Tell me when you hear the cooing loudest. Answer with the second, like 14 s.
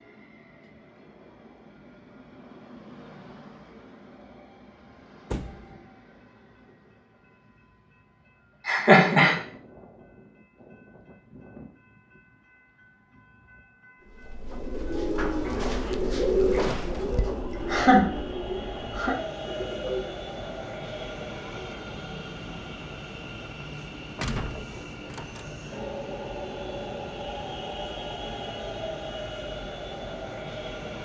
16 s.